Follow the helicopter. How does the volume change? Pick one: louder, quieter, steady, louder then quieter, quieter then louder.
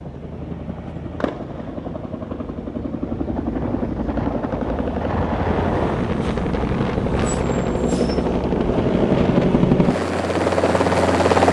louder.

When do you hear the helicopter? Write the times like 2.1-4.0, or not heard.
0.0-11.4.